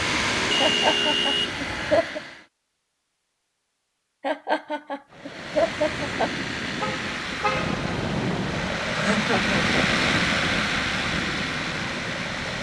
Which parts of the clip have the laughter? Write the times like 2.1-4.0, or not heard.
0.6-2.2, 4.2-6.3, 8.9-10.7.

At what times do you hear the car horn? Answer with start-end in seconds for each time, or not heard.
0.0-2.0, 6.8-7.8.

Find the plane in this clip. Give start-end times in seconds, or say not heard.
0.0-2.5, 5.1-12.5.